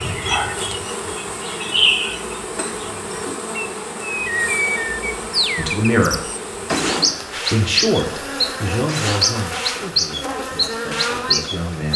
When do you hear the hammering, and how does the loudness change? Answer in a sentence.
You can't hear the hammering here.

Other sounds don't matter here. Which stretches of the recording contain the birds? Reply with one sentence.
The birds can be heard from 0.0 to 11.9 s.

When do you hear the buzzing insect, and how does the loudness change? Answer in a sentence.
The buzzing insect can be heard from 0.0 to 11.9 s, at a steady volume.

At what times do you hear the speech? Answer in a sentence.
You can hear the speech from 5.5 to 6.2 s and from 7.5 to 11.9 s.